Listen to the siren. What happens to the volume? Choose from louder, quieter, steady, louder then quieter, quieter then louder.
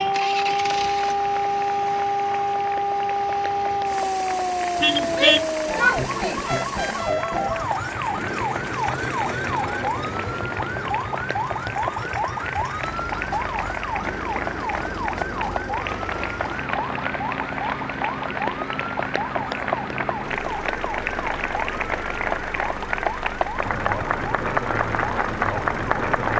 quieter.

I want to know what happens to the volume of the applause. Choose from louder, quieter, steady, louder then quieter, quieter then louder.
louder.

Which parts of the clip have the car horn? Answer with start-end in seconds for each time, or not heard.
4.8-5.5.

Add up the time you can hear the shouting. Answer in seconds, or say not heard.
2 s.